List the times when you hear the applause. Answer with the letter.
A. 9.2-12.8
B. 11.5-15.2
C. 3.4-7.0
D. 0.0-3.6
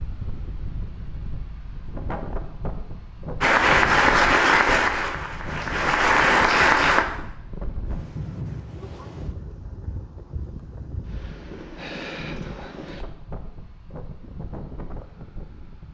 C.